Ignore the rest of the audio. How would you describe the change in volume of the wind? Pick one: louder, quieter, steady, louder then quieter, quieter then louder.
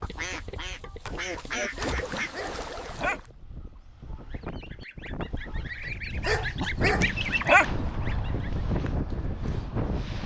louder.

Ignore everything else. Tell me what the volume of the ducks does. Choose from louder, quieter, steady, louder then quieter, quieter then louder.
quieter then louder.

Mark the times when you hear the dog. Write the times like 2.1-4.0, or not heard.
1.8-3.2, 6.2-8.2.